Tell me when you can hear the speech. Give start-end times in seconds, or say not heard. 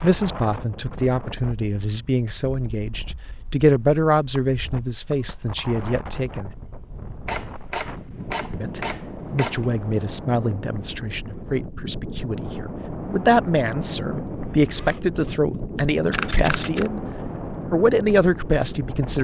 0.0-6.5, 8.5-17.1, 17.7-19.1.